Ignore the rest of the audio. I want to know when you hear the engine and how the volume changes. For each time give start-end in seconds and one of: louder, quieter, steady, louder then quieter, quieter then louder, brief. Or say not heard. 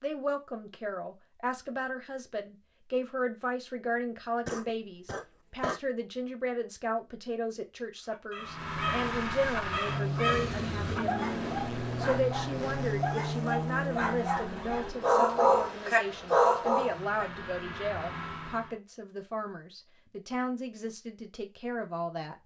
8.3-18.8 quieter.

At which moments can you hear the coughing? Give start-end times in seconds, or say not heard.
4.5-5.8.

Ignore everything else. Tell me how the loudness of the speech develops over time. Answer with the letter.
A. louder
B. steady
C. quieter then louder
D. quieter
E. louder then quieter
B.